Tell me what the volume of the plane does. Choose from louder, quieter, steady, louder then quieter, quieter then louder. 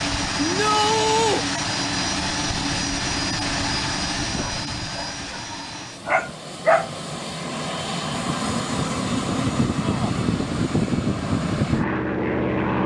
quieter then louder.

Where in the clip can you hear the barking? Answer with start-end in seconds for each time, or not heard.
4.3-6.9.